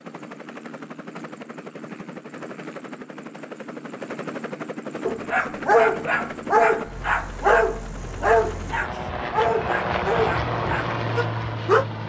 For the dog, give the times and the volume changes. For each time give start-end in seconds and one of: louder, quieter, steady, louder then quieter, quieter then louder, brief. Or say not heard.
5.0-11.8 quieter.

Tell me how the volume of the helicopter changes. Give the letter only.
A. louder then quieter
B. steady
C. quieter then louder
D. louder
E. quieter
D.